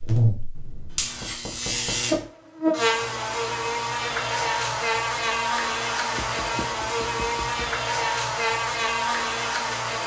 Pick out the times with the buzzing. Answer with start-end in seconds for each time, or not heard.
0.0-10.0.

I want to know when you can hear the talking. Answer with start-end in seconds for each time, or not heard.
not heard.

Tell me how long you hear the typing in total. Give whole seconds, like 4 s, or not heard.
not heard.